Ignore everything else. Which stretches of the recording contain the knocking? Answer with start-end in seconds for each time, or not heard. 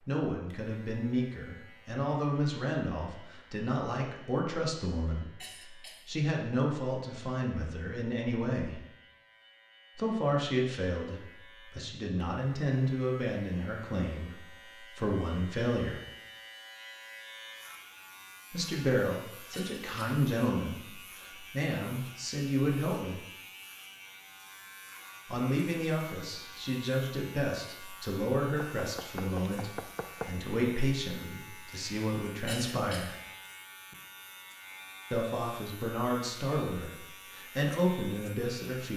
28.6-30.4.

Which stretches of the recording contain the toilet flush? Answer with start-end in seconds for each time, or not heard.
not heard.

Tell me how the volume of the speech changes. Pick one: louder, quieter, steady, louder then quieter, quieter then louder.
steady.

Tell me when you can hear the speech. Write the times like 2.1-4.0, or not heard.
0.1-8.8, 9.9-16.0, 18.5-23.2, 25.2-33.1, 35.1-38.9.